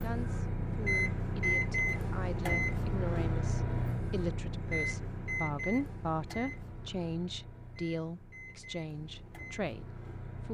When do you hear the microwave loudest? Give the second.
1 s.